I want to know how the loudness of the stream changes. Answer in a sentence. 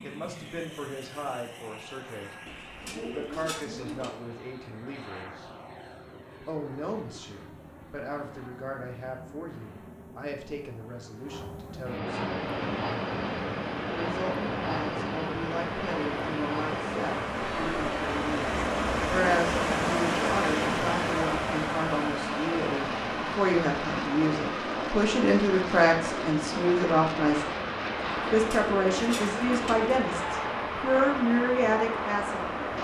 The volume of the stream goes up, then down.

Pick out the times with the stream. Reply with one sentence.
The stream can be heard from 12.2 to 32.7 s.